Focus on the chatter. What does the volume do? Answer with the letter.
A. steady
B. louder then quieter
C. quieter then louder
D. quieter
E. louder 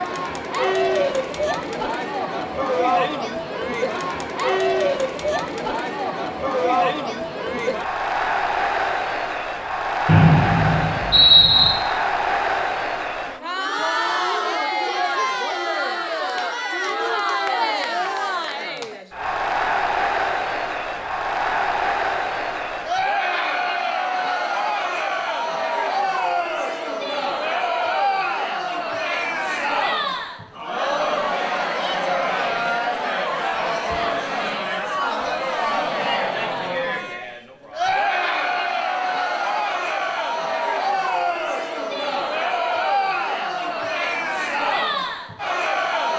A.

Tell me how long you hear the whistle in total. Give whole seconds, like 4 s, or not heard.
2 s.